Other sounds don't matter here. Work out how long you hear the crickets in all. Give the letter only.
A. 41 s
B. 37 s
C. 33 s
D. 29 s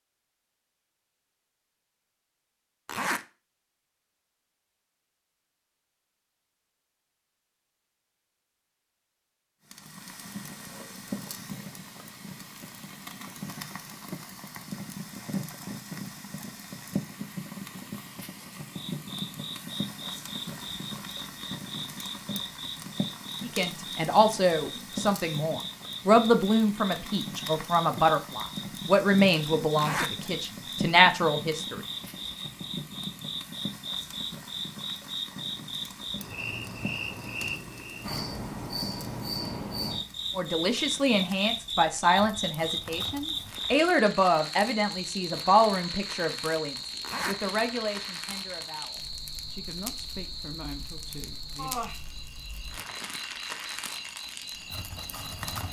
B.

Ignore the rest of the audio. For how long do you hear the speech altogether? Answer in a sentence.
The speech can be heard for 20 seconds in total.